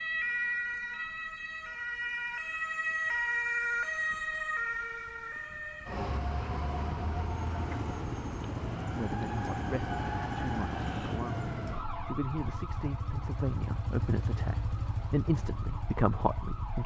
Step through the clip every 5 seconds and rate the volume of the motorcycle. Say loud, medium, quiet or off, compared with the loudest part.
off, loud, loud, loud.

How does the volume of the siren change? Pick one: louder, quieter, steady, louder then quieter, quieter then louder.
quieter.